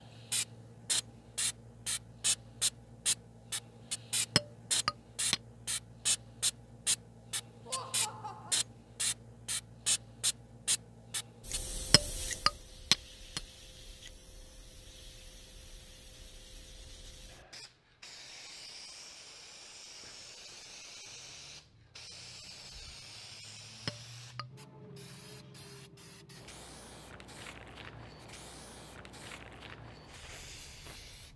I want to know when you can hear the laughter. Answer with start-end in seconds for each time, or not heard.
7.7-8.6.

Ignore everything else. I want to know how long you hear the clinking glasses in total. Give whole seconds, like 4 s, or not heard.
3 s.